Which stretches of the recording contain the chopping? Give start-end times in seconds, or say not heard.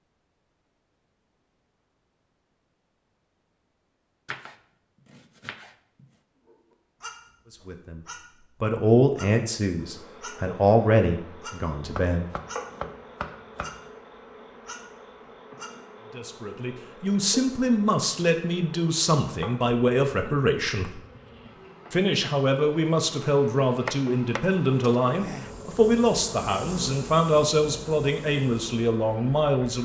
4.2-6.0, 11.9-13.9, 23.9-25.5.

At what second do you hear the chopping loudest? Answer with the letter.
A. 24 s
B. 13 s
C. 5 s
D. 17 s
A.